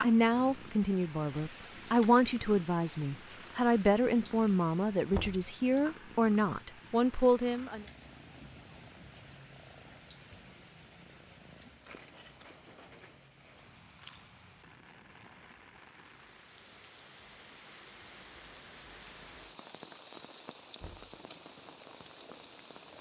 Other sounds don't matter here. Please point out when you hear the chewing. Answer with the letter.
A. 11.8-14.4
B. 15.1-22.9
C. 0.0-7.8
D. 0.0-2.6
A.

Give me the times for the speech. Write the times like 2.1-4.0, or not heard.
0.0-7.8.